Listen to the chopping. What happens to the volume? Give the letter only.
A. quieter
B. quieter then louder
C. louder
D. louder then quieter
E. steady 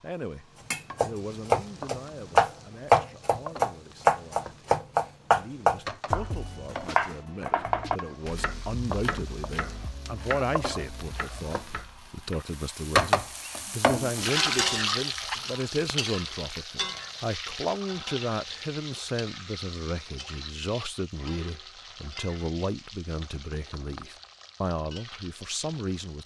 A.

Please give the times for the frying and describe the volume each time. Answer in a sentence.
The frying can be heard from 0.0 to 26.2 s, getting louder then quieter.